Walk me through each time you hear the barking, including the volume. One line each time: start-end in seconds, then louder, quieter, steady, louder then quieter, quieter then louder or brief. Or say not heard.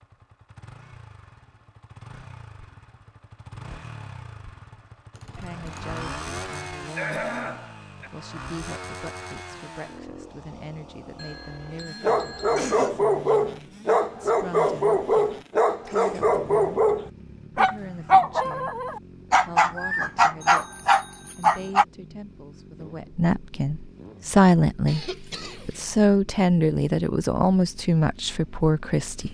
12.0-21.9 steady.